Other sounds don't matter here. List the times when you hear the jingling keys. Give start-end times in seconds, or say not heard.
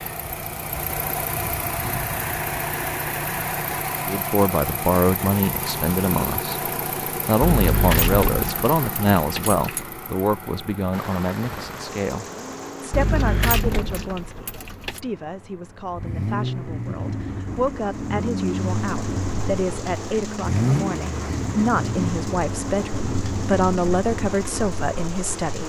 7.4-9.8, 12.9-15.0.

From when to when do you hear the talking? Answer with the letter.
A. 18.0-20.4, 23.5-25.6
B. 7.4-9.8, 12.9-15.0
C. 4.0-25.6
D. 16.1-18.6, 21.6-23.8
C.